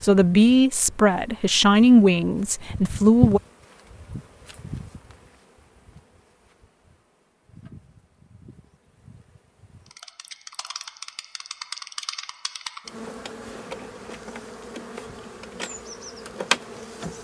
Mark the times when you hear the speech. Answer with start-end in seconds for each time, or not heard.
0.0-3.4.